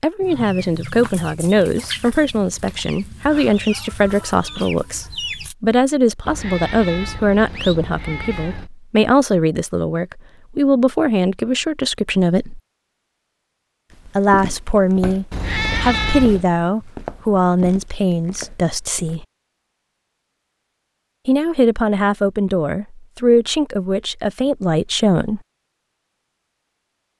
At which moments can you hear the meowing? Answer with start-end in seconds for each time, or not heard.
6.2-8.7, 15.3-16.4.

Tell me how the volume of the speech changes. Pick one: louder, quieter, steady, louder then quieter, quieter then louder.
steady.